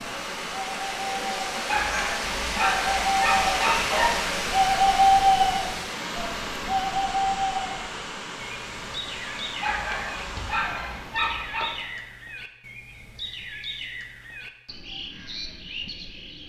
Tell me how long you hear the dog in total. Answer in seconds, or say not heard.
5 s.